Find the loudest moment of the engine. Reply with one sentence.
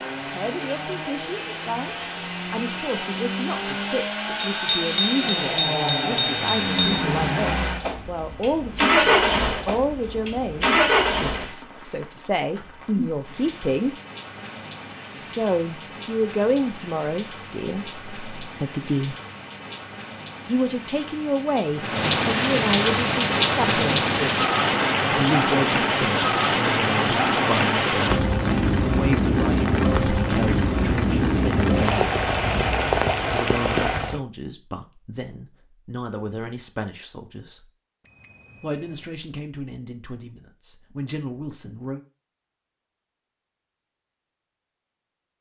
The volume of the engine peaks at 9 seconds.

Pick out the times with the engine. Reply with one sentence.
The engine can be heard from 0.0 to 11.6 s.